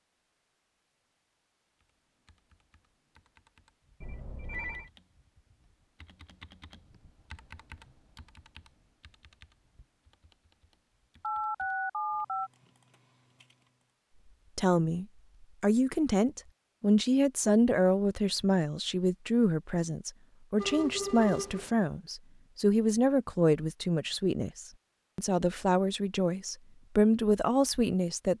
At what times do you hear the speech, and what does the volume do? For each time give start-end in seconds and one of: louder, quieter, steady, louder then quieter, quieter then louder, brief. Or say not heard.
14.6-28.3 steady.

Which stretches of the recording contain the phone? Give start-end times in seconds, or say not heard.
4.0-4.9, 11.2-12.5, 20.6-21.7.